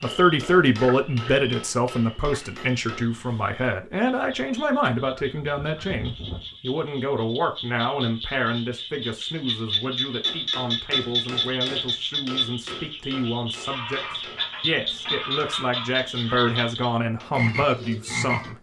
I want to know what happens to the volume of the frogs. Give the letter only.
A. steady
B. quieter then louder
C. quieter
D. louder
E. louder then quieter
D.